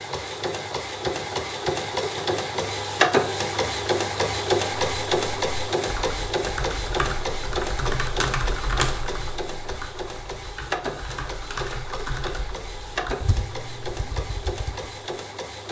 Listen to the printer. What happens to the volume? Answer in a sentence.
The loudness of the printer goes down.